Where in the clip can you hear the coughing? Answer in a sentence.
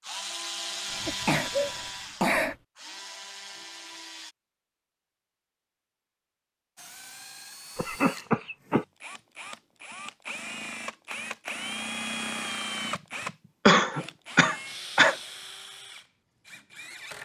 You can hear the coughing from 0.9 to 2.5 s, from 7.8 to 8.8 s and from 13.7 to 15.2 s.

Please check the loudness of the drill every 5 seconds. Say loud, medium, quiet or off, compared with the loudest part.
loud, medium, loud, medium.